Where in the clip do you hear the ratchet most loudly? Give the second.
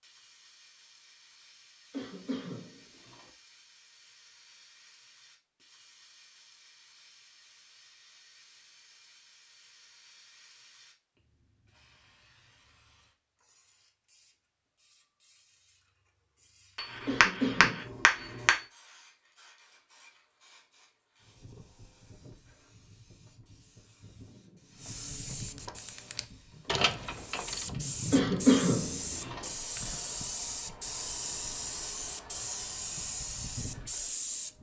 27 s.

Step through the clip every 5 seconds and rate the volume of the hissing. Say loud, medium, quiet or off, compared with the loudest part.
quiet, quiet, quiet, quiet, quiet, loud, loud.